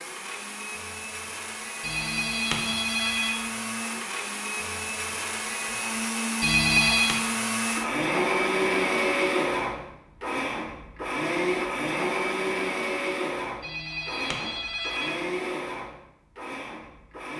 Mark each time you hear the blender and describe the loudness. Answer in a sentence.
The blender can be heard from 0.0 to 17.3 s, getting louder then quieter.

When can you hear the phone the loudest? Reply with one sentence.
The loudest moment of the phone is at 7 seconds.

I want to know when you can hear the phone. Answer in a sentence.
You can hear the phone from 1.8 to 3.4 s, from 6.4 to 7.2 s and from 13.6 to 15.2 s.